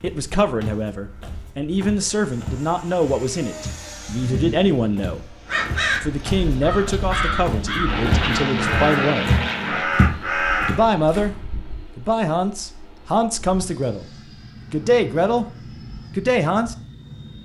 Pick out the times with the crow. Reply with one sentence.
The crow can be heard from 5.5 to 10.8 s.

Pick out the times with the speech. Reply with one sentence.
You can hear the speech from 0.0 to 5.3 s, from 6.0 to 9.4 s, from 10.7 to 11.3 s, from 11.9 to 15.4 s and from 16.1 to 16.8 s.